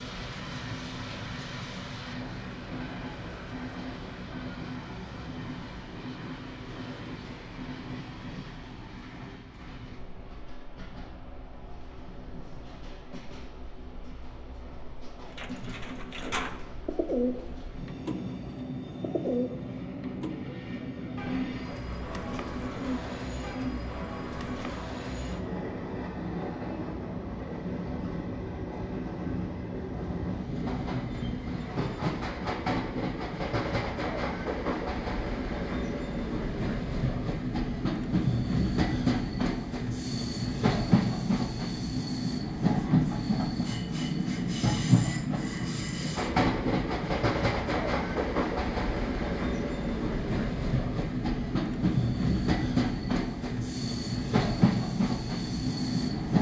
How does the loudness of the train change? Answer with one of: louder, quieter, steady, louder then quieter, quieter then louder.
louder.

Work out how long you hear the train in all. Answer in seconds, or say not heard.
56 s.